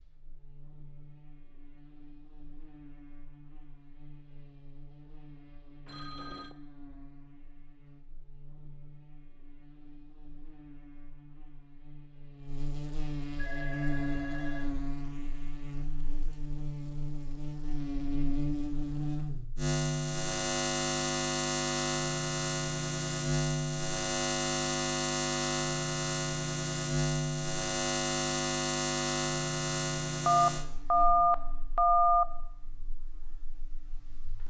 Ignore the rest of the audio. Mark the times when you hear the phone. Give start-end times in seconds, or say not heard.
5.8-6.5, 13.3-15.1, 30.2-32.2.